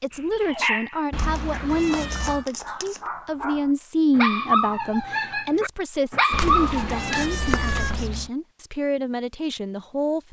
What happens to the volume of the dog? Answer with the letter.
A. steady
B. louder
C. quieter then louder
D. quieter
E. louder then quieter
C.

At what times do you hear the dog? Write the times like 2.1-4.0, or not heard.
0.1-7.3.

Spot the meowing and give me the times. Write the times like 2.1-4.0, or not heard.
1.1-2.5, 6.3-8.3.